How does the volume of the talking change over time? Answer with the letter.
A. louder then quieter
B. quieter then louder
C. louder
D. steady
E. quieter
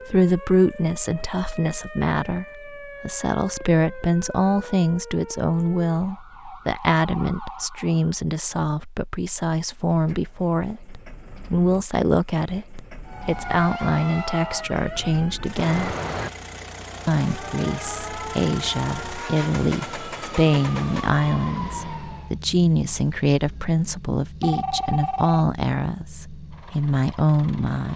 D.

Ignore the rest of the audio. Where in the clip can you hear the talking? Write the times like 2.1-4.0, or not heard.
0.1-15.9, 17.1-27.9.